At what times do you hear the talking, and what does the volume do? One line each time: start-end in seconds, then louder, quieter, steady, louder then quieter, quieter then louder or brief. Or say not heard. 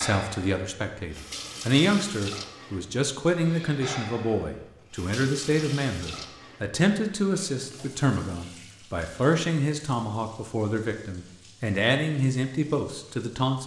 0.0-13.6 steady.